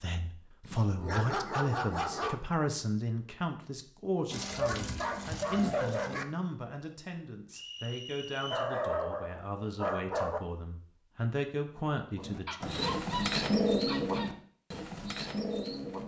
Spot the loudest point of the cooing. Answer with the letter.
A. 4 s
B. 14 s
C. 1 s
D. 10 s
B.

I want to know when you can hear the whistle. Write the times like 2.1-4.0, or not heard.
7.5-8.7.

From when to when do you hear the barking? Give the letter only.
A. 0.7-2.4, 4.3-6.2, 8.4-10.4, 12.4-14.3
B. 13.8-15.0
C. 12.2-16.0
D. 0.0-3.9
A.